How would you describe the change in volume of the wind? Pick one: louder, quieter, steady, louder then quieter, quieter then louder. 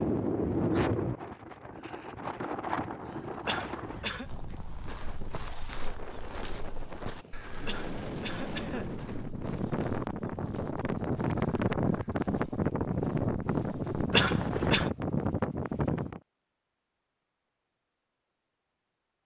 quieter then louder.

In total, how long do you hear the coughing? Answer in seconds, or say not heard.
3 s.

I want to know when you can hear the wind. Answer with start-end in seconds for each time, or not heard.
0.0-16.2.